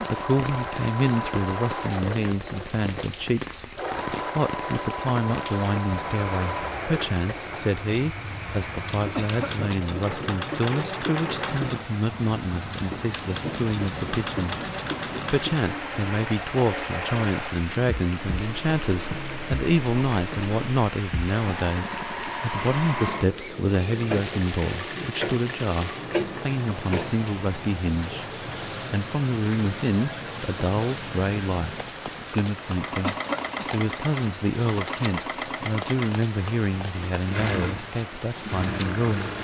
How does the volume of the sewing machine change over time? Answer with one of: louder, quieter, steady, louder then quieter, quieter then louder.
steady.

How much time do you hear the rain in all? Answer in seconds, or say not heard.
39 s.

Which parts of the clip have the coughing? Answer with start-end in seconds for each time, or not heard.
9.2-9.9, 33.0-33.9.